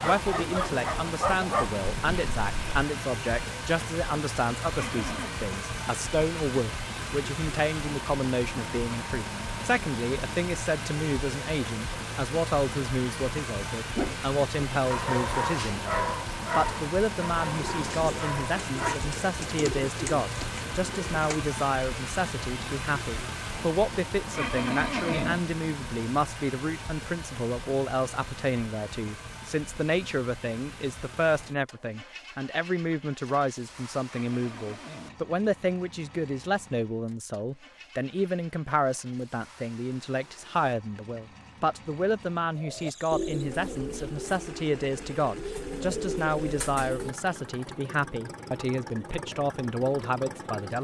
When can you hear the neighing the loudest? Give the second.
25 s.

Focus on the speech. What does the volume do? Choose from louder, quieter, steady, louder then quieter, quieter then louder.
steady.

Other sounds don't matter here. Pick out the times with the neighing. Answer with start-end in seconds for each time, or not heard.
4.7-5.4, 24.3-25.4, 34.1-35.1.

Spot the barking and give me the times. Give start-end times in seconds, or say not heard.
0.0-2.9, 13.9-19.0.